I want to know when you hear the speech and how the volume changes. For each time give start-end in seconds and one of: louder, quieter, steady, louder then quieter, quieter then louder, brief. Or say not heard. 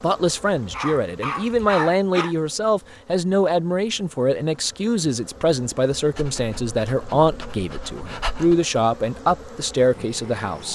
0.0-10.7 steady.